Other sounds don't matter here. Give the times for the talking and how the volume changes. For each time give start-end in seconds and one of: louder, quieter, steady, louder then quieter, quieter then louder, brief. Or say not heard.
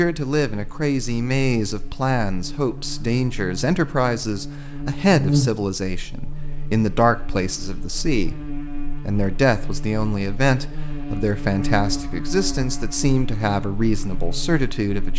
0.0-15.1 steady.